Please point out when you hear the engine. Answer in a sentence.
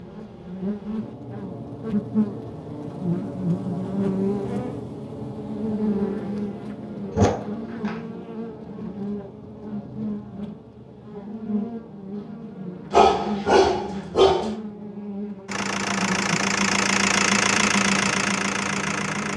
You can hear the engine from 15.4 to 19.3 s.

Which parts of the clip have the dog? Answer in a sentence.
The dog can be heard from 7.1 to 8.0 s and from 12.9 to 14.6 s.